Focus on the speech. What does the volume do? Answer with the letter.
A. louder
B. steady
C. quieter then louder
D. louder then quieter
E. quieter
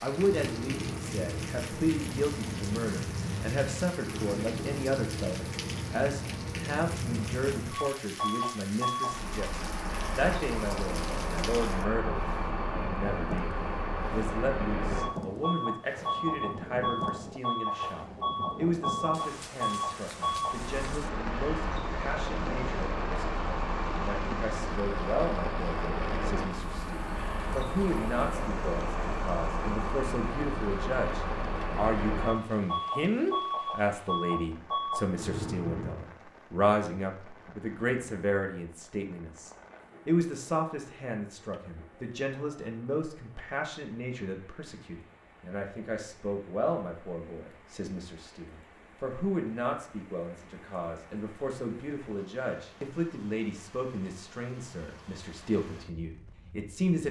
B.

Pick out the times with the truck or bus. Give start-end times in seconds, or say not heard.
0.0-36.0.